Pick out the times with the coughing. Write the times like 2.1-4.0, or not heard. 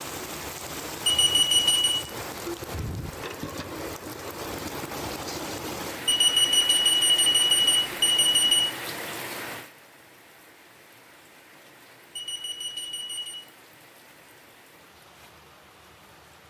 not heard.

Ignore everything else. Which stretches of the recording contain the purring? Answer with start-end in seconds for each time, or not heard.
not heard.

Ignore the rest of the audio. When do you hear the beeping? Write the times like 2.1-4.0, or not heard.
1.1-2.0, 6.0-8.7, 12.2-13.4.